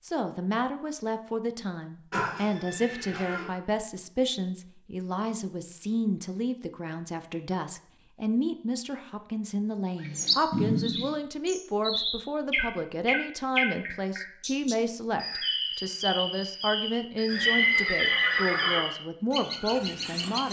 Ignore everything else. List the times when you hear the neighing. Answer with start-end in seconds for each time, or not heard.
2.1-3.5, 10.5-11.2, 17.2-18.8.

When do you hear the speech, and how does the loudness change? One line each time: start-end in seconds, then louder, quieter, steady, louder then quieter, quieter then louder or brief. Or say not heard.
0.0-20.4 steady.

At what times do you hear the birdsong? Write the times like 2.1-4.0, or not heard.
9.9-20.4.